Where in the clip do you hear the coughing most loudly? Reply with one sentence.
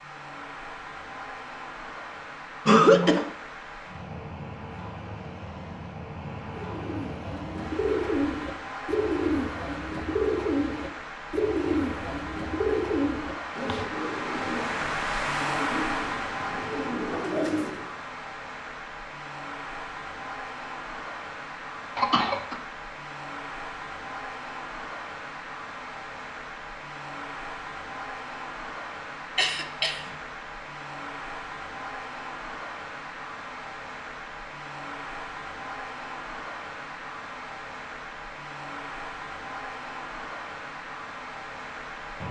The loudest moment of the coughing is at 3 seconds.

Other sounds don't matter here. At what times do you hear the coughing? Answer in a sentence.
You can hear the coughing from 2.6 to 3.2 s, from 21.9 to 22.6 s and from 29.4 to 30.1 s.